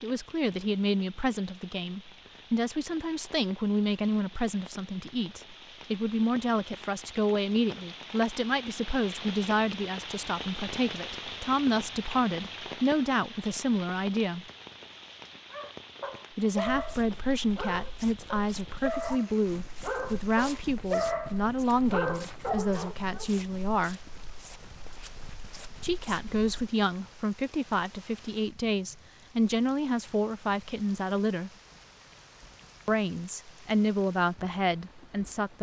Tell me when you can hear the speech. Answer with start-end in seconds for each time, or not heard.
0.0-14.4, 16.4-24.0, 25.8-31.5, 32.9-35.5.